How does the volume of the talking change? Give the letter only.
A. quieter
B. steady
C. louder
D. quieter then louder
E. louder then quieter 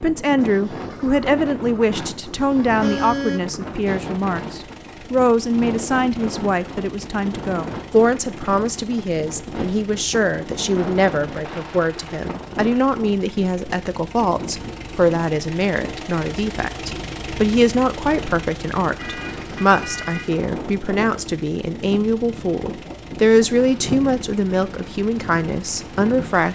B.